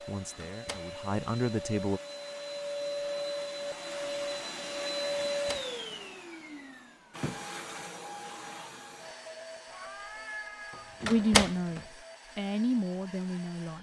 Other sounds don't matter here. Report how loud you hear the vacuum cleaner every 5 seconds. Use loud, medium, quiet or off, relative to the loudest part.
loud, loud, quiet.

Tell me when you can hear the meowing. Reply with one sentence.
The meowing can be heard from 9.7 to 10.9 s.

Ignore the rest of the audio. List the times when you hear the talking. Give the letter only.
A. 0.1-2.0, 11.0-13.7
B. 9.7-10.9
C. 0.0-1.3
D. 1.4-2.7
A.